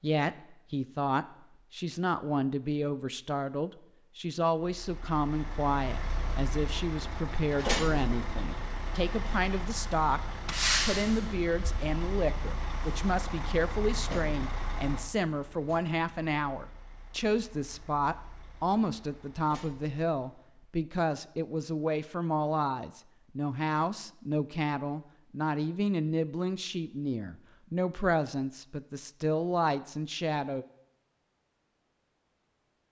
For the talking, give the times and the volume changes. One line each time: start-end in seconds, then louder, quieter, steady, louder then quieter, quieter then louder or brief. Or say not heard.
0.0-10.2 steady
10.8-30.6 steady.